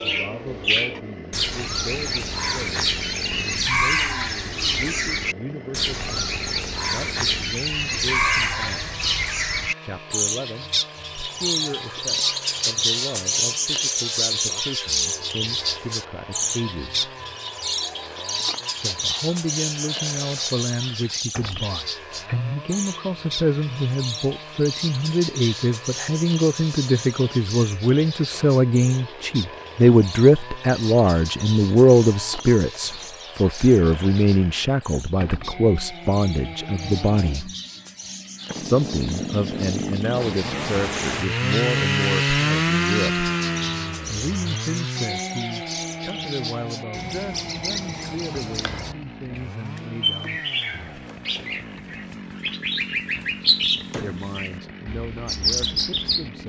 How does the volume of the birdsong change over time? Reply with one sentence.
The volume of the birdsong goes down, then up.